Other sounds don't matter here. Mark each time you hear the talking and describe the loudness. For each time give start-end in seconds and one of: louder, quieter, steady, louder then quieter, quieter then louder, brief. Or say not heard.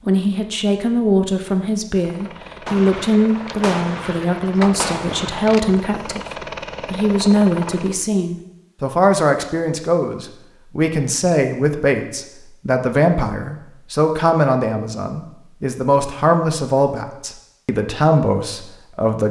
0.1-19.2 steady.